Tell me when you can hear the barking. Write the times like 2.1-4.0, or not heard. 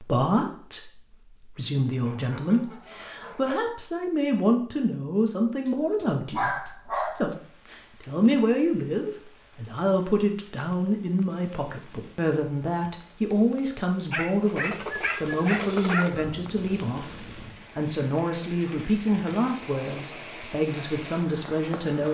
5.7-7.3, 14.1-16.1.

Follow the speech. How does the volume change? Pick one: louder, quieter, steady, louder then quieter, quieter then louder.
steady.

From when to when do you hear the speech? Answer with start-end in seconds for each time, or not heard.
0.0-22.1.